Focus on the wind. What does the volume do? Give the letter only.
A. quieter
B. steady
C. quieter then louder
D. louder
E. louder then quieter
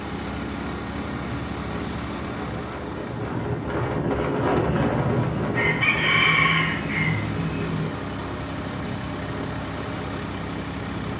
E.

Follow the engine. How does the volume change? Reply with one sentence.
The loudness of the engine goes down, then up.